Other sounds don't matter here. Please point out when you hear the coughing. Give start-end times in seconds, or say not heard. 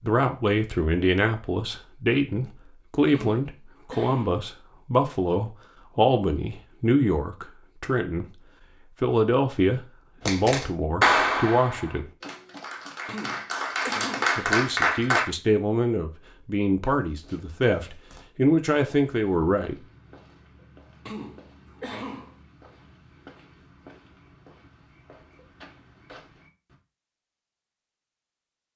3.1-4.5, 13.1-14.3, 21.1-22.4.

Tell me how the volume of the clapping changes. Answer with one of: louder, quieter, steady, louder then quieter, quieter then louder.
quieter then louder.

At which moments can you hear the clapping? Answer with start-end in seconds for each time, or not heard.
10.2-15.2.